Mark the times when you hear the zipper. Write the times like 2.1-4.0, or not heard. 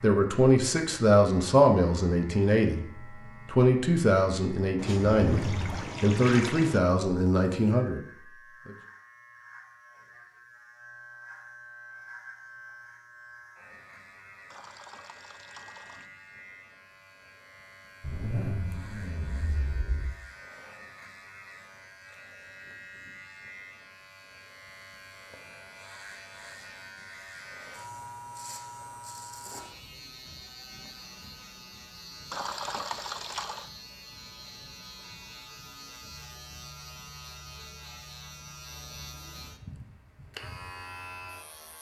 5.2-5.8, 18.0-20.1, 29.4-29.9.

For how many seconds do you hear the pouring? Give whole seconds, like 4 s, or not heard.
5 s.